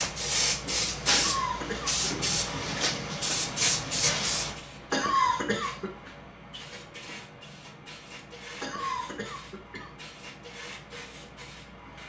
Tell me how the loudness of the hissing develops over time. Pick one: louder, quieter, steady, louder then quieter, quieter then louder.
quieter.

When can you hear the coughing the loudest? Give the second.
5 s.